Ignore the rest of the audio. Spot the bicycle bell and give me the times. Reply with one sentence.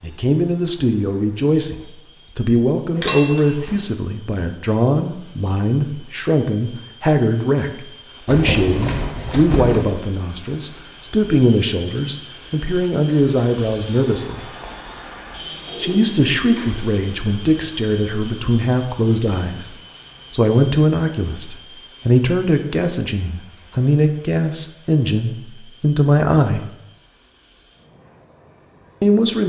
The bicycle bell can be heard from 3.0 to 3.8 s.